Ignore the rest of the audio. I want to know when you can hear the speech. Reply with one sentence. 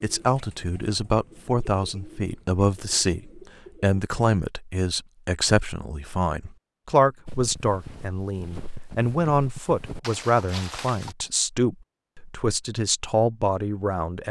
The speech can be heard from 0.0 to 14.2 s.